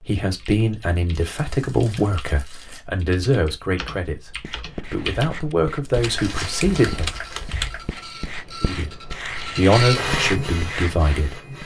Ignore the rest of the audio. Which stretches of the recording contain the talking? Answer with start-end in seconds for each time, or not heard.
0.1-7.1, 8.6-11.3.